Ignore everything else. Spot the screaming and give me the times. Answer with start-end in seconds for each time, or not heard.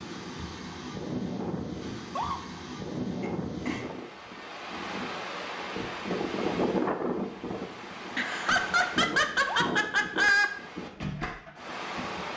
1.9-2.4, 9.2-9.7.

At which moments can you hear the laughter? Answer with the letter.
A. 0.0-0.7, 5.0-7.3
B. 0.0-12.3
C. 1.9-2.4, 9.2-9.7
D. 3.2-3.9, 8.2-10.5
D.